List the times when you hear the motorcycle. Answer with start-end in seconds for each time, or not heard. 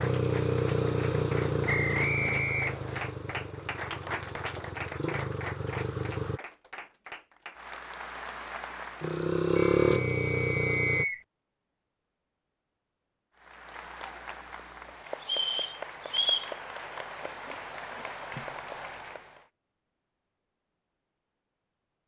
0.0-6.4, 9.0-11.1.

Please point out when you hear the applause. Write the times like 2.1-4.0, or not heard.
0.0-9.3, 13.3-19.4.